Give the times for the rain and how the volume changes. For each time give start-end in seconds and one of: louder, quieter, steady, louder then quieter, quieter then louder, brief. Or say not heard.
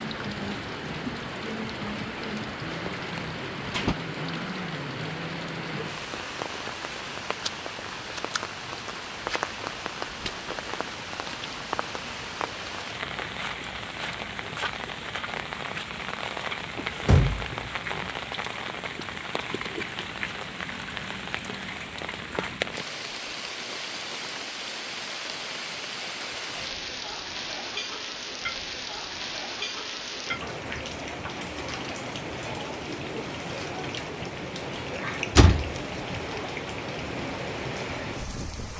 0.0-38.7 steady.